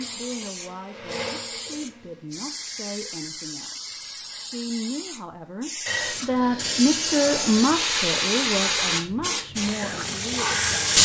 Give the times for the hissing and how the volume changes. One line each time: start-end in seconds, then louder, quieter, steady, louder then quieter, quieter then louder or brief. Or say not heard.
0.0-11.0 louder.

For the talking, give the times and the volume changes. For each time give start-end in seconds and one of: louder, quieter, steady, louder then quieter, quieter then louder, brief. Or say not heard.
0.0-11.0 louder then quieter.